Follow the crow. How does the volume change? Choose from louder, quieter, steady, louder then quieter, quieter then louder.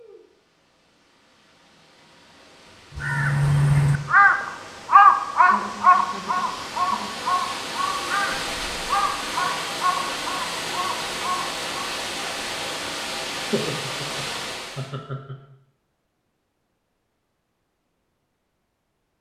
quieter.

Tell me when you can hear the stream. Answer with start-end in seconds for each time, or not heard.
0.0-14.9.